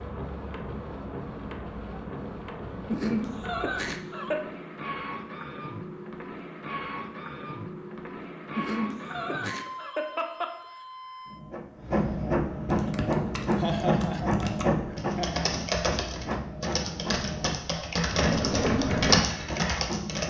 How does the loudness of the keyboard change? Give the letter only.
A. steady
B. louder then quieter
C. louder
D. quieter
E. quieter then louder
C.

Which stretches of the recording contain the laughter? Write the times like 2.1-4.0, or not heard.
2.9-4.5, 8.6-10.6, 13.6-15.3.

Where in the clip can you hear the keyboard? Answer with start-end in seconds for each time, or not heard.
12.7-20.2.